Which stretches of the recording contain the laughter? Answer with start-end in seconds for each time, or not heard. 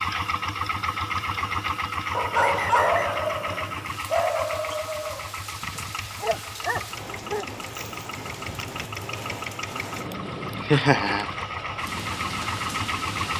10.1-11.3.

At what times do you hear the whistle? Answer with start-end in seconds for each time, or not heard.
2.4-3.2.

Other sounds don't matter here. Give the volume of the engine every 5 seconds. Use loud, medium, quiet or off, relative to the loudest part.
loud, medium, loud.